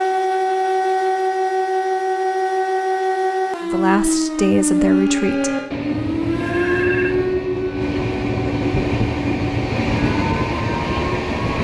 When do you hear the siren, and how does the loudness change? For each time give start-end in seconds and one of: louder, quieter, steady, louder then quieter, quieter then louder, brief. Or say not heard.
0.0-11.5 quieter.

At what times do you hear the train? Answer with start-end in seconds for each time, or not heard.
4.7-11.5.